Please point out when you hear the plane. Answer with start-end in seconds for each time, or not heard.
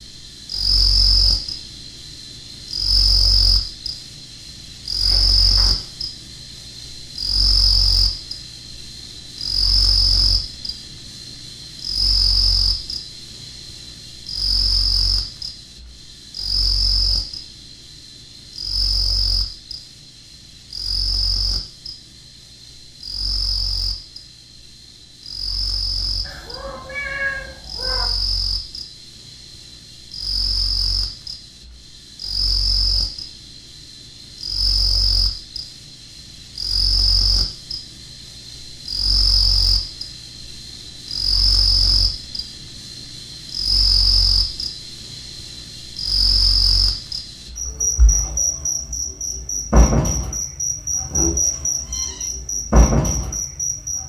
not heard.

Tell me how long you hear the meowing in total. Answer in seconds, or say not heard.
4 s.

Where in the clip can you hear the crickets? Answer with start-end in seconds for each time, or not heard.
0.0-54.0.